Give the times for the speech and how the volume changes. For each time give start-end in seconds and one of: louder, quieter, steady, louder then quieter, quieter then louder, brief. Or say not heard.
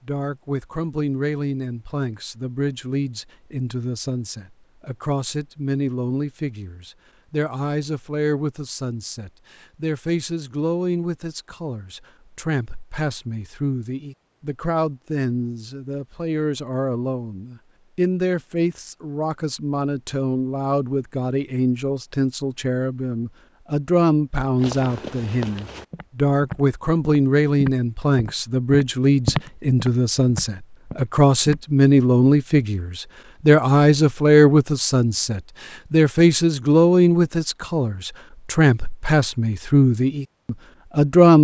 0.1-41.3 louder.